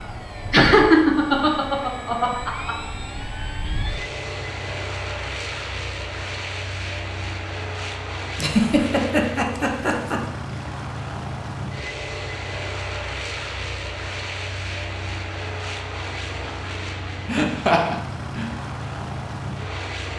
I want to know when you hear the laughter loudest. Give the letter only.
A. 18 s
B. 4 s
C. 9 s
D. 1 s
D.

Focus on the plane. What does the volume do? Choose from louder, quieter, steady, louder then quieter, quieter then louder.
steady.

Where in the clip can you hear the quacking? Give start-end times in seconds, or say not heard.
not heard.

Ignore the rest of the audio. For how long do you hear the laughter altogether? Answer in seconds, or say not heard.
5 s.